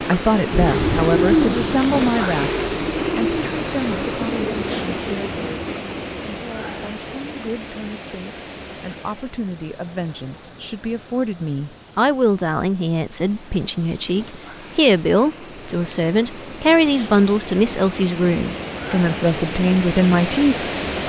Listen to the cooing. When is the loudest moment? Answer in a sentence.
The volume of the cooing peaks at 1 second.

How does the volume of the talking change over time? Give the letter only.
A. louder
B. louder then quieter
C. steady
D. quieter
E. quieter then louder
E.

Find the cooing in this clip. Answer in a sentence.
The cooing can be heard from 0.5 to 6.0 s.